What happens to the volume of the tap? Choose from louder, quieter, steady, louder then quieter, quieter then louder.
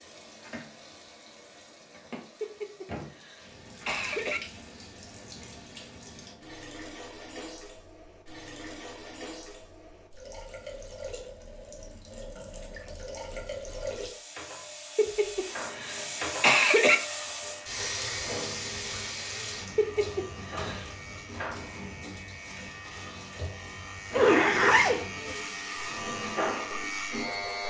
louder then quieter.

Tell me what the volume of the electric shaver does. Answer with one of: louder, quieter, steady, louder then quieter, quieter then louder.
louder.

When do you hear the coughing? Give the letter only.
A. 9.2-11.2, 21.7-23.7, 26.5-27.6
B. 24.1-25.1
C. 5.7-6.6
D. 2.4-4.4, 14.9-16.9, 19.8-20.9
D.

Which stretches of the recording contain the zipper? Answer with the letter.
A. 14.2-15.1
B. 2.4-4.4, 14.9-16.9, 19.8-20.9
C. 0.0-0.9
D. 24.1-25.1
D.